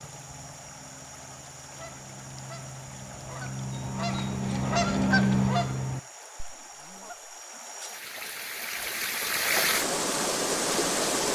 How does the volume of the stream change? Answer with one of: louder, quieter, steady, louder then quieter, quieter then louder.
louder.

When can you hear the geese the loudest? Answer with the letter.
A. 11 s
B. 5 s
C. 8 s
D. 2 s
B.